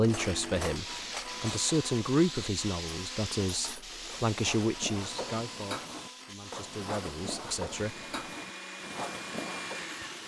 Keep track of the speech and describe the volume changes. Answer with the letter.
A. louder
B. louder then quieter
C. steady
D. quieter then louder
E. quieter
E.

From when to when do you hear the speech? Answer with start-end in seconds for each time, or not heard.
0.0-7.9.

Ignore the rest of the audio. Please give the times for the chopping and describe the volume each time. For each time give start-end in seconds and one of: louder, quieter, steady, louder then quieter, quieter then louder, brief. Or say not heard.
not heard.